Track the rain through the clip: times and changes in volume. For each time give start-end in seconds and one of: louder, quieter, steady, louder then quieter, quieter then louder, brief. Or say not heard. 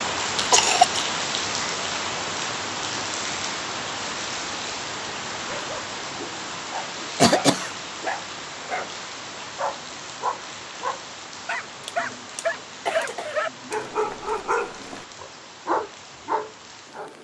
0.0-17.2 quieter.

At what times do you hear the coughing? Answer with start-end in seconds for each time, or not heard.
0.3-1.1, 7.2-7.7, 11.8-13.8.